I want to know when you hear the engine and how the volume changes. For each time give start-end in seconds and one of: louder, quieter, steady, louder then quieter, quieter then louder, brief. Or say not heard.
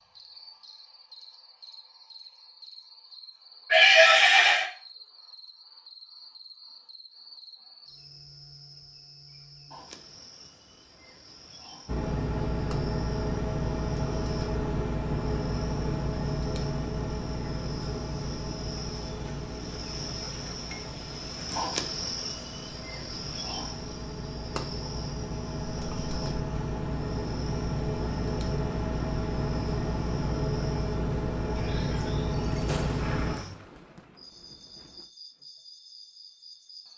11.8-33.4 quieter then louder.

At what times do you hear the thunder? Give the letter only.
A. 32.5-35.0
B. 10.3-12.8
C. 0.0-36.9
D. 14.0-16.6
A.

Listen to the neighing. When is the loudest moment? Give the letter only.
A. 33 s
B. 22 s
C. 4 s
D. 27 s
C.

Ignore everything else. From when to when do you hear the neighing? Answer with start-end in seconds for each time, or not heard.
3.7-4.7, 31.6-33.5.